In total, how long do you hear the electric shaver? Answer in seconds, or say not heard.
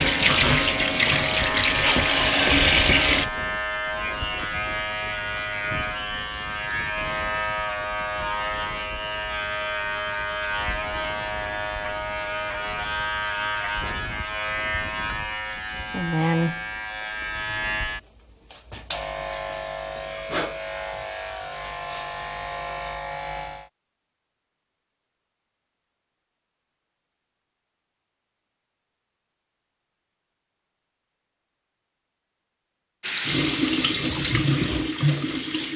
24 s.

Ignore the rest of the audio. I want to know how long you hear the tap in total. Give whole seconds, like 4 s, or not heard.
6 s.